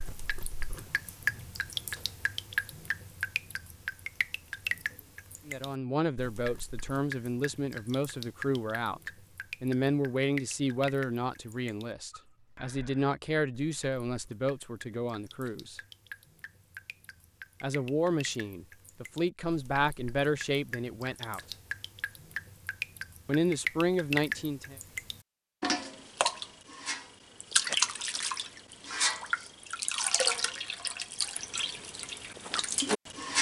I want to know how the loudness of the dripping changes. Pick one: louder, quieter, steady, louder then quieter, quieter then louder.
quieter then louder.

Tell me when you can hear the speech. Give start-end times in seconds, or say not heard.
5.5-15.8, 17.6-21.6, 23.2-24.8.